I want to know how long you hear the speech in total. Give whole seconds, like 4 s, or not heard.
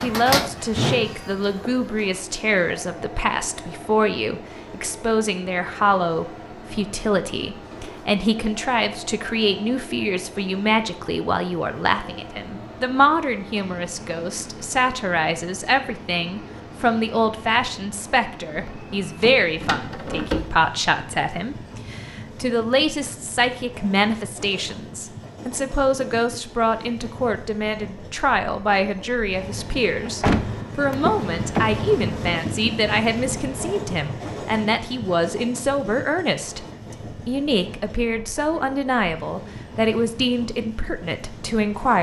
41 s.